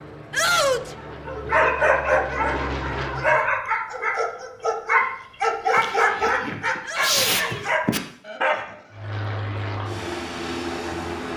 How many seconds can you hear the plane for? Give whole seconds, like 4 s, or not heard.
6 s.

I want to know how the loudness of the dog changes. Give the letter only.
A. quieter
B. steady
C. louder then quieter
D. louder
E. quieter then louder
B.